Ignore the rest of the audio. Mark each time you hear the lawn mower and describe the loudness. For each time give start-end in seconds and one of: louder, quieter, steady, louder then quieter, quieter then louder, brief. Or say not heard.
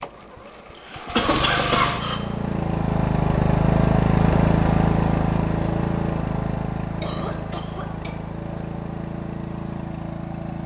0.0-10.6 louder then quieter.